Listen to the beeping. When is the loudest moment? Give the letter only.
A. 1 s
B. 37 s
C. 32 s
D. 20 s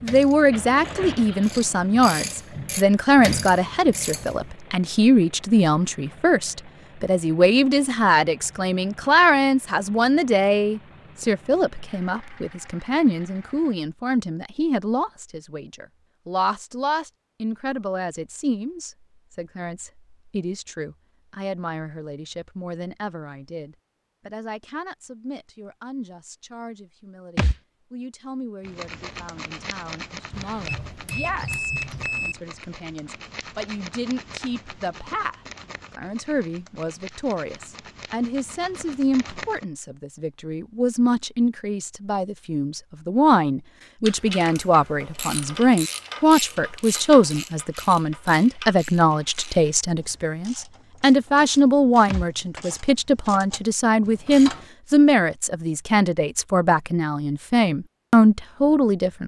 C.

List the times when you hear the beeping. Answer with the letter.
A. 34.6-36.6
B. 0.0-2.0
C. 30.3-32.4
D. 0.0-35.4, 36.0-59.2
C.